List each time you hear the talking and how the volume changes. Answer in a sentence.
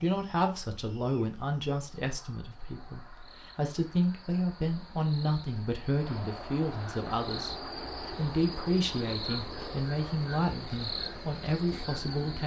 The talking can be heard from 0.0 to 12.4 s, at a steady volume.